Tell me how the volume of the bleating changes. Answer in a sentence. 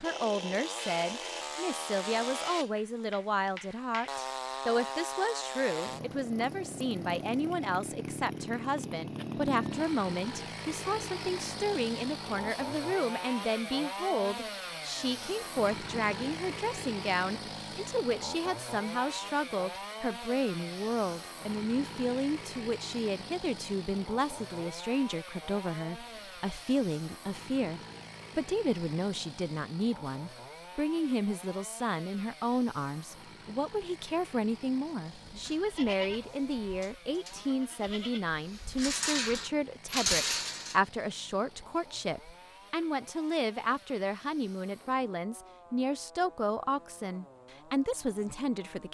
The loudness of the bleating goes down, then up.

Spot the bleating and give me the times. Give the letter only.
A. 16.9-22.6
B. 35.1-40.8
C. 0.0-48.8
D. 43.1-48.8
B.